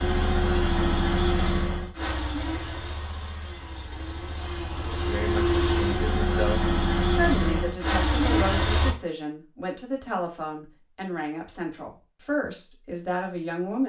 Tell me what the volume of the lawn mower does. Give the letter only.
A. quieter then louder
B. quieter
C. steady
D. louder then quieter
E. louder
A.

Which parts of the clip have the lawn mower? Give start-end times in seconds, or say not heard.
0.0-8.9.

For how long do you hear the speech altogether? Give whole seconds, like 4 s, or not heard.
9 s.